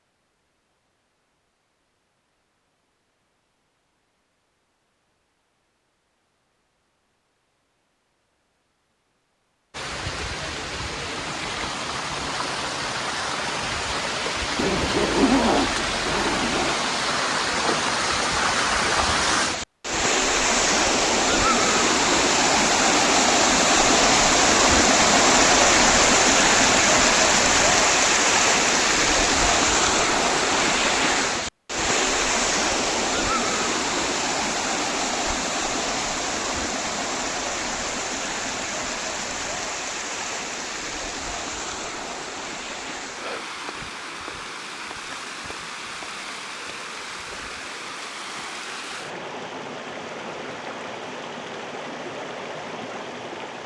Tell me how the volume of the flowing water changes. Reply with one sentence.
The loudness of the flowing water goes up, then down.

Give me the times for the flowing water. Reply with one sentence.
The flowing water can be heard from 9.7 to 53.6 s.